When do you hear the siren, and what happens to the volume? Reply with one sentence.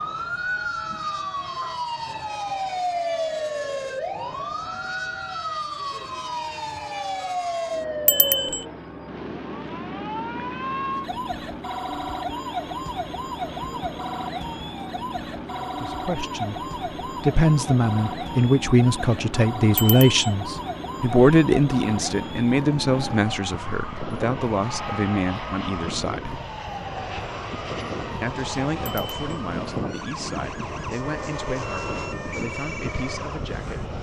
The siren can be heard from 0.0 to 33.9 s, getting quieter.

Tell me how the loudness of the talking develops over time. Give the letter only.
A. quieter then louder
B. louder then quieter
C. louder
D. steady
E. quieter
E.